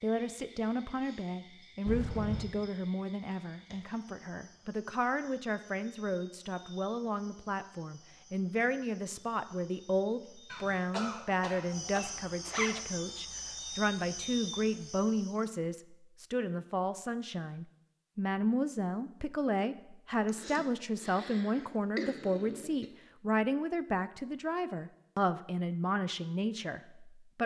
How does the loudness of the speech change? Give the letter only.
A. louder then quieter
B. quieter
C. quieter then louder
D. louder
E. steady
E.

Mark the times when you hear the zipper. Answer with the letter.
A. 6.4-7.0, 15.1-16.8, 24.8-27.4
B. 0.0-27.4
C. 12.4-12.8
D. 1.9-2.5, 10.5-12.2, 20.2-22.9
C.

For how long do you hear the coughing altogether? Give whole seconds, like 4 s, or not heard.
5 s.